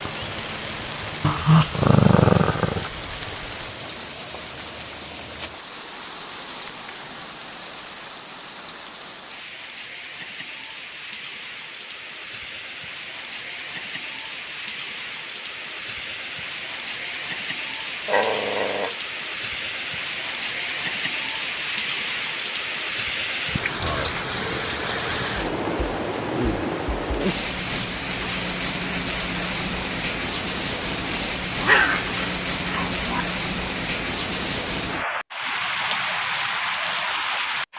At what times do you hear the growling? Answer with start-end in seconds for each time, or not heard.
1.2-2.9, 18.1-18.9, 31.6-33.2.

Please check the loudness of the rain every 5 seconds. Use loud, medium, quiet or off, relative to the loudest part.
medium, medium, medium, medium, loud, loud, loud, loud.